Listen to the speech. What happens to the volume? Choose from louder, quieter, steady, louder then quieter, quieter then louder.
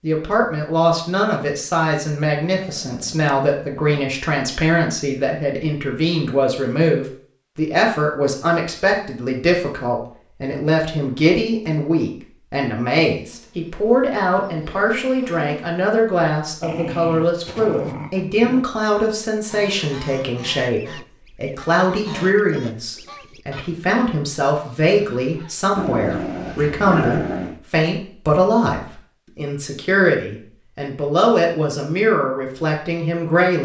steady.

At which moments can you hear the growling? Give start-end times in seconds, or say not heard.
2.5-4.1, 16.6-18.6, 25.8-27.6.